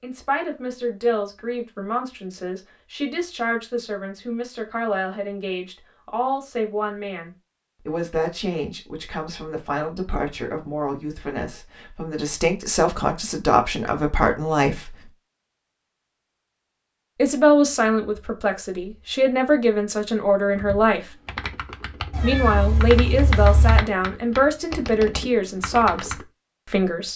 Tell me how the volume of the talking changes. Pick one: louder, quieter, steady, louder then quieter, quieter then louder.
louder.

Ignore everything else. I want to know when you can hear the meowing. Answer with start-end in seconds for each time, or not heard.
22.1-23.8.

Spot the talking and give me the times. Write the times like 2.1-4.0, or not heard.
0.0-15.1, 17.1-21.1, 22.2-27.1.